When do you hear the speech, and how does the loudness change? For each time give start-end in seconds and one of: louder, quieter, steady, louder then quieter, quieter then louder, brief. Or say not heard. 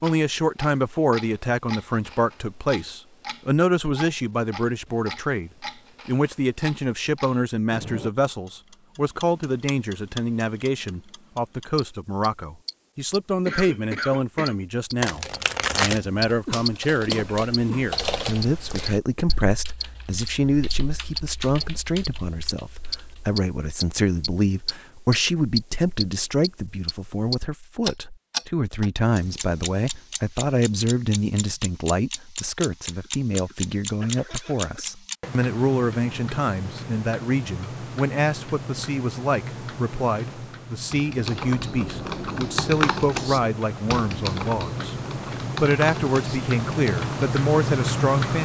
0.0-45.0 steady
45.6-48.4 brief.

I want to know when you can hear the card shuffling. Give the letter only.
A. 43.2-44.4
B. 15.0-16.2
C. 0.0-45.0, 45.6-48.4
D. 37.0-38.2
B.